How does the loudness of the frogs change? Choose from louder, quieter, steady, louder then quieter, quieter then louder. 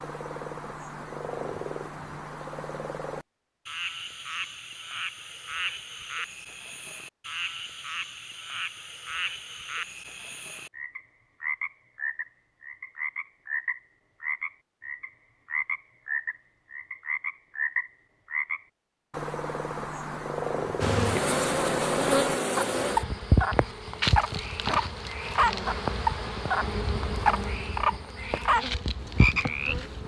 louder.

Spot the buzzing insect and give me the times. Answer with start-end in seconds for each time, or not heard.
20.8-30.0.